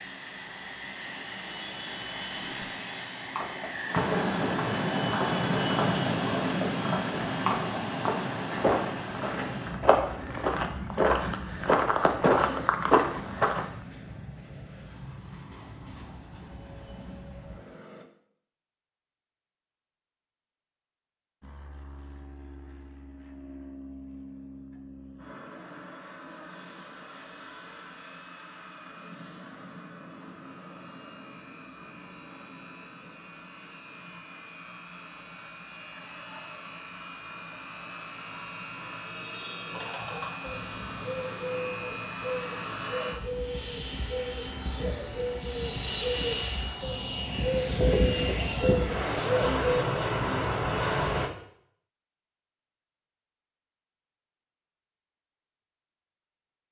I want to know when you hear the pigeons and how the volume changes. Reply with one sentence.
The pigeons can be heard from 39.7 to 49.9 s, getting louder.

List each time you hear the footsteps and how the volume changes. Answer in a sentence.
The footsteps can be heard from 3.4 to 13.7 s, getting louder.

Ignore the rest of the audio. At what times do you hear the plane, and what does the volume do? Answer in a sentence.
The plane can be heard from 0.0 to 18.1 s, getting louder then quieter; and from 21.4 to 51.3 s, getting louder.